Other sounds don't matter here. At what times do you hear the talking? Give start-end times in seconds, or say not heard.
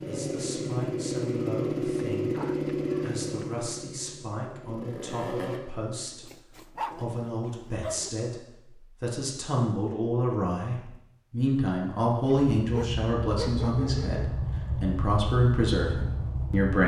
0.1-2.4, 3.0-6.2, 7.0-16.8.